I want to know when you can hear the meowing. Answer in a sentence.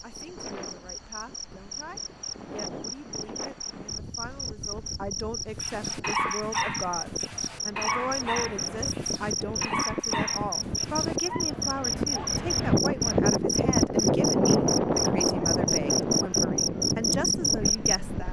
You can't hear the meowing here.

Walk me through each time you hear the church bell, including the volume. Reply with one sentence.
You can't hear the church bell here.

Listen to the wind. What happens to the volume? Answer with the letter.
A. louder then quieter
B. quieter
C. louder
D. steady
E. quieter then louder
C.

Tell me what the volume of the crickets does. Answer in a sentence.
The loudness of the crickets goes up.